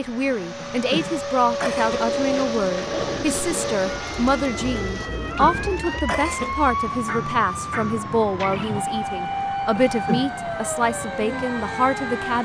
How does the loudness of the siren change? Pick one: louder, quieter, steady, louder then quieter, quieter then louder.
steady.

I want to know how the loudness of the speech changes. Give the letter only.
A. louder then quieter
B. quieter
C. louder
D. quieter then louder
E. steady
E.